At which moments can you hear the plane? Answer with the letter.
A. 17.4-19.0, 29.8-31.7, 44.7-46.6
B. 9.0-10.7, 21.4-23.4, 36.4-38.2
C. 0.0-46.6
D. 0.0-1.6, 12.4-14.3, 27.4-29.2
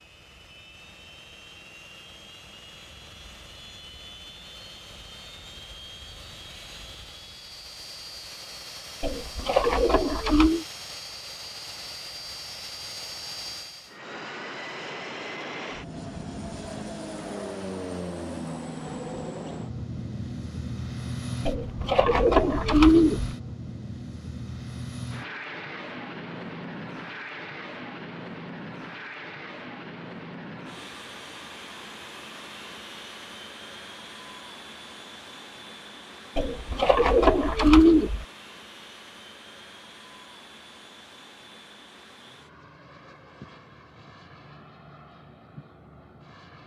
C.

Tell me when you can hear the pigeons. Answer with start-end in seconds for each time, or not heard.
9.0-10.7, 21.4-23.4, 36.4-38.2.